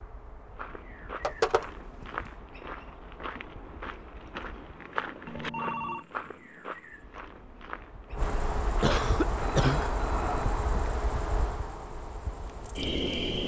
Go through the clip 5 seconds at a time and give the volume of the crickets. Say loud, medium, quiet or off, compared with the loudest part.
quiet, loud, loud.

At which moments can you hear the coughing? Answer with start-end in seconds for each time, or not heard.
8.8-9.9.